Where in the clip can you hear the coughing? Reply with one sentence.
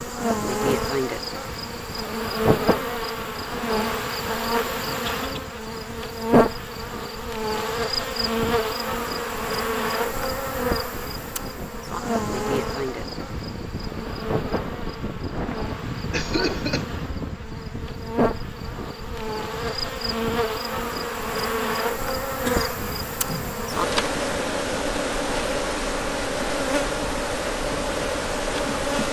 The coughing can be heard from 5.0 to 5.5 s, from 16.1 to 16.9 s and from 22.4 to 24.1 s.